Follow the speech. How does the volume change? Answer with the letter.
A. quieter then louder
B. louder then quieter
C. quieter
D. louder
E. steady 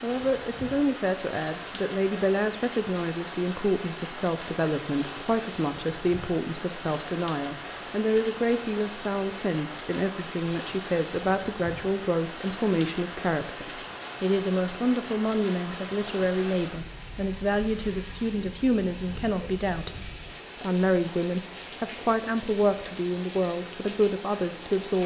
E.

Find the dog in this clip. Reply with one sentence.
The dog can't be heard in this clip.